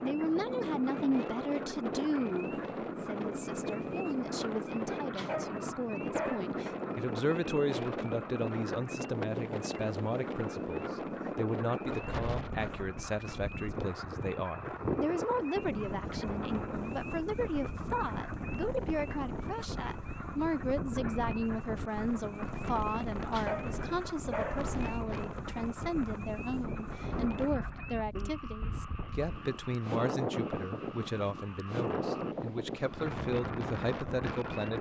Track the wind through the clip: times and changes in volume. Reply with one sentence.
The wind can be heard from 0.0 to 34.7 s, at a steady volume.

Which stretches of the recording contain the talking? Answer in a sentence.
The talking can be heard from 0.0 to 34.7 s.